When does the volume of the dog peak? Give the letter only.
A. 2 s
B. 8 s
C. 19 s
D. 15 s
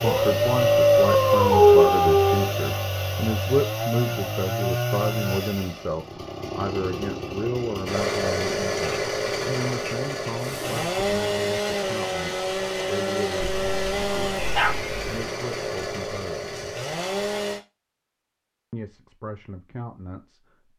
A.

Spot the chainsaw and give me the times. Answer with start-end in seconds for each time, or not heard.
0.0-17.6.